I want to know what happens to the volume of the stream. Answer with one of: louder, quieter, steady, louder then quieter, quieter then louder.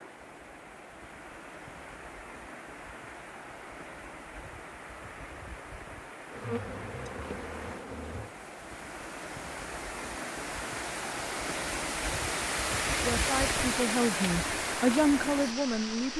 louder.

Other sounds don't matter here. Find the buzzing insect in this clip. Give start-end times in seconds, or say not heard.
6.3-8.3.